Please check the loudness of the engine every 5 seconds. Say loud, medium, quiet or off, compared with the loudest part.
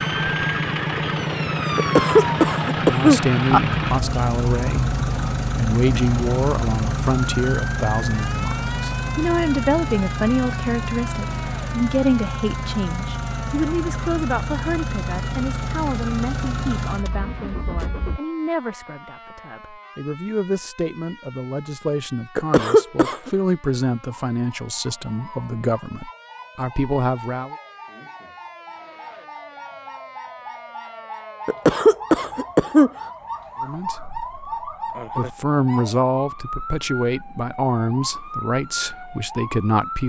loud, loud, medium, medium, off, off, off, off.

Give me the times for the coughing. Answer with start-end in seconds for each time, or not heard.
1.8-3.6, 22.4-23.3, 31.4-32.9.